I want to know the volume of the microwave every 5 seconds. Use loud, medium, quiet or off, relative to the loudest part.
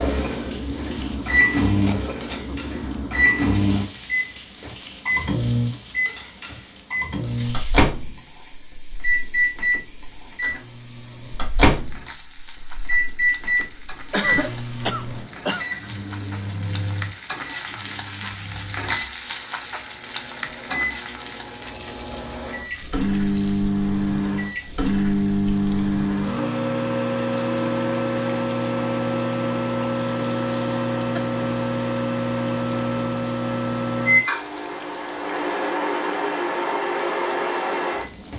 loud, loud, loud, quiet, loud, loud, loud, loud.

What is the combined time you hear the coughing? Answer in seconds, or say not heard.
3 s.